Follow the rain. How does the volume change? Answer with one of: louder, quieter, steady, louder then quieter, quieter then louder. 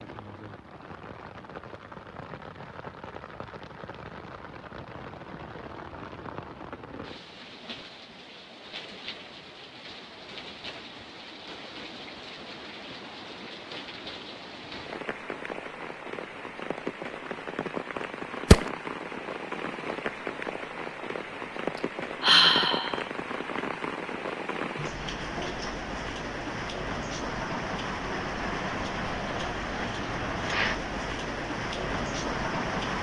louder.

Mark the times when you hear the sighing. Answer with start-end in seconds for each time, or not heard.
21.8-23.0.